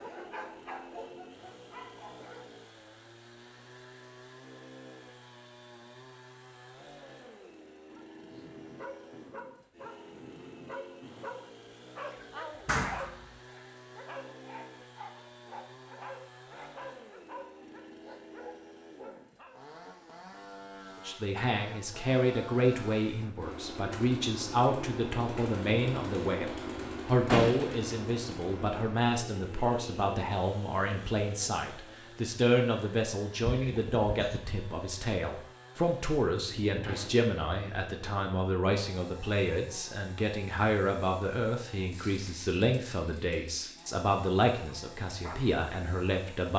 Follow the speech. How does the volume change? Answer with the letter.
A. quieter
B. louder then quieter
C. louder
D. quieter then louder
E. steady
E.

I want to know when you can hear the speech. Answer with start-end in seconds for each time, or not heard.
21.1-46.5.